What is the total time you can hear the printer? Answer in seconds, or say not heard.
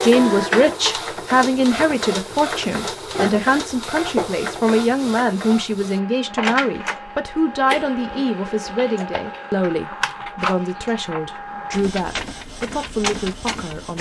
14 s.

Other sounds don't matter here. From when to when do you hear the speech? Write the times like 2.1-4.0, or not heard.
0.0-13.9.